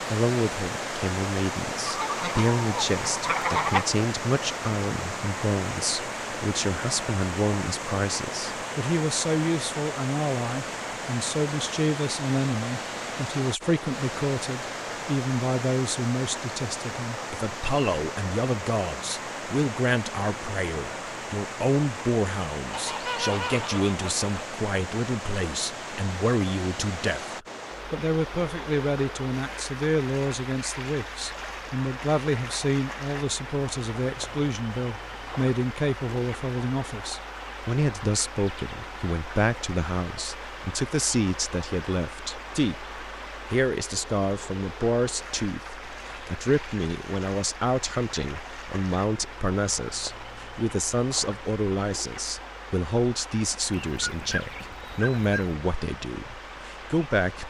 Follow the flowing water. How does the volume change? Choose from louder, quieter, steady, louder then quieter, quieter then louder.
quieter.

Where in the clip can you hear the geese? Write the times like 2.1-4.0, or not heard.
1.9-3.9, 22.7-24.2, 53.7-55.5.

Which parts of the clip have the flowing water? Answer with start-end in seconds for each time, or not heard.
0.0-57.4.